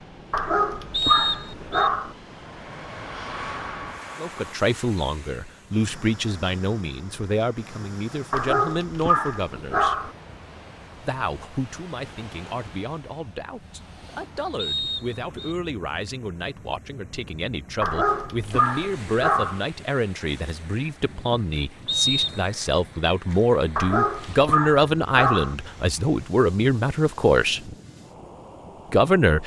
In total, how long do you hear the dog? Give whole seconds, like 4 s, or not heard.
7 s.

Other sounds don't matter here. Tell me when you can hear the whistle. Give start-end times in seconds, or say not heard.
0.9-1.9, 14.6-15.6, 21.9-22.5.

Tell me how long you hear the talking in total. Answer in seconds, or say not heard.
23 s.